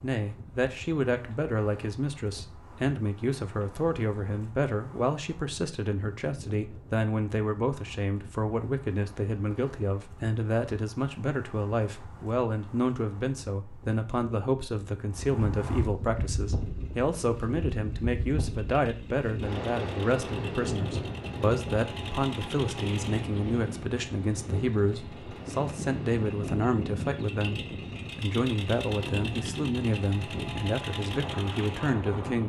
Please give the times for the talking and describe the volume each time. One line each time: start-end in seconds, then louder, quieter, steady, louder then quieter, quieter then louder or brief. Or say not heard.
0.0-32.4 steady.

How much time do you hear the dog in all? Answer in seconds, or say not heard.
not heard.